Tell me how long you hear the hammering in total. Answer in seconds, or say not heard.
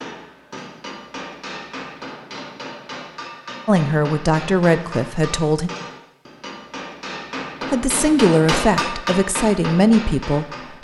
11 s.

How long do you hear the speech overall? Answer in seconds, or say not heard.
5 s.